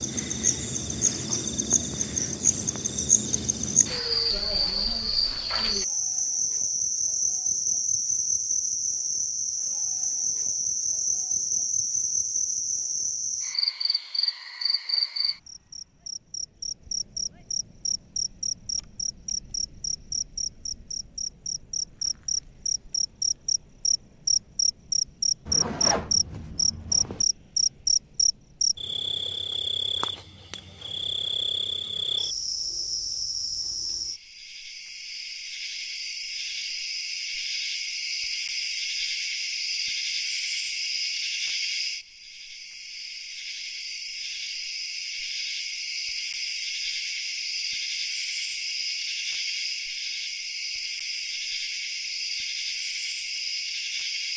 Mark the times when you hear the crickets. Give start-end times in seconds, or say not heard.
0.0-54.3.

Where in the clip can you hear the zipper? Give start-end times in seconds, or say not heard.
25.4-27.2.